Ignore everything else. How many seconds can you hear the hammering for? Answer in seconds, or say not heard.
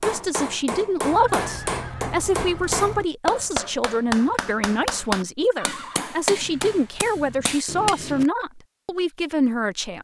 8 s.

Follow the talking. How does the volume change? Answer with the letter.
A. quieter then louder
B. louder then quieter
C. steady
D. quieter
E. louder
C.